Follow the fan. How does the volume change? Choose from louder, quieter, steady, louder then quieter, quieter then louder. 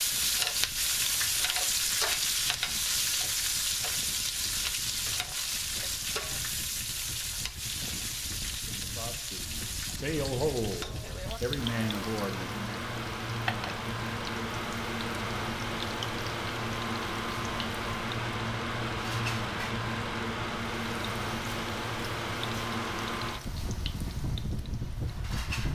louder.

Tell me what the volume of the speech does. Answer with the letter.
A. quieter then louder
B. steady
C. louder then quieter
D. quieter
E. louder
E.